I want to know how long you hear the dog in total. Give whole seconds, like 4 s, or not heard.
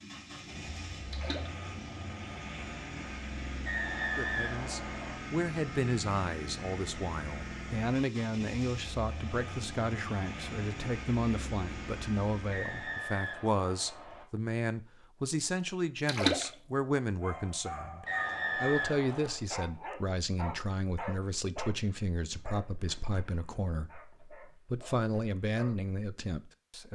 9 s.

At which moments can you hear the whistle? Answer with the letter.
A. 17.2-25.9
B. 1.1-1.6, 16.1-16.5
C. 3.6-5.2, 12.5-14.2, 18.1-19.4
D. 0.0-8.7
C.